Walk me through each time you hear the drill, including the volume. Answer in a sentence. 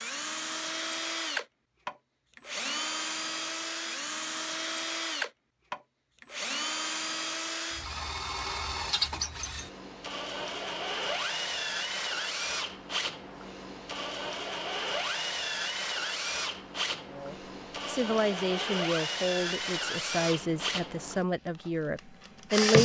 The drill can be heard from 0.0 to 22.8 s, at a steady volume.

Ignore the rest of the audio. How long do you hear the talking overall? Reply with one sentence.
You can hear the talking for 6 seconds altogether.